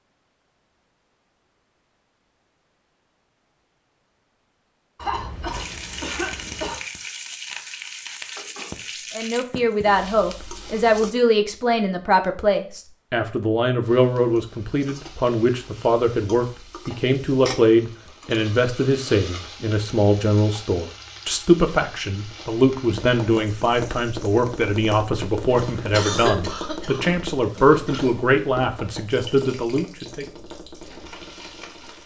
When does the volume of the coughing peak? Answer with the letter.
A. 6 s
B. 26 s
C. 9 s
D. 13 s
B.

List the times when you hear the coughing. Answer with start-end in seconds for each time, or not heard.
5.0-6.8, 25.9-28.1.